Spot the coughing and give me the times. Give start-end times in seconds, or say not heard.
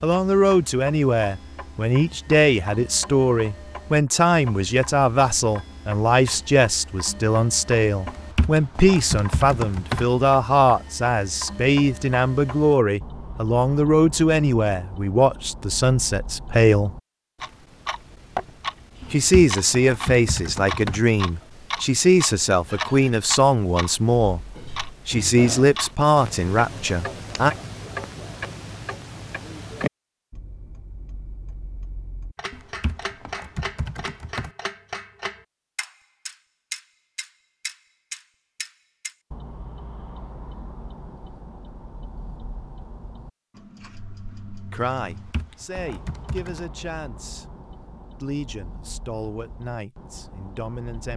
not heard.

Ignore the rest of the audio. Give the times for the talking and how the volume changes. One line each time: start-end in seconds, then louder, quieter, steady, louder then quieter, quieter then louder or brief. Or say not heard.
0.0-16.9 steady
19.1-27.6 steady
44.7-47.5 brief
48.2-51.1 brief.